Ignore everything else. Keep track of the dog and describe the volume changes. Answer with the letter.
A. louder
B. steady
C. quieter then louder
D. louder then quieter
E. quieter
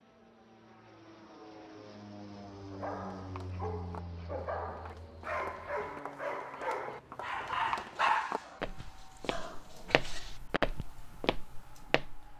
D.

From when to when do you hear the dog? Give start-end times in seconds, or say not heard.
2.6-10.4.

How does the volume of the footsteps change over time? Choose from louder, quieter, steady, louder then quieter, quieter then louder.
louder.